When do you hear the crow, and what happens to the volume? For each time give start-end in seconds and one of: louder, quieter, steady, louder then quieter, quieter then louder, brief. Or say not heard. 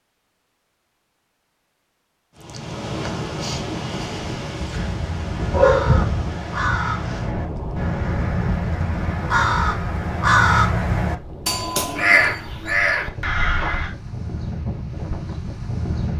4.7-13.9 louder.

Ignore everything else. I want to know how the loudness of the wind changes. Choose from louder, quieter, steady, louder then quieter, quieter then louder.
quieter then louder.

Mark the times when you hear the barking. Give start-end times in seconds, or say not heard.
4.6-6.0.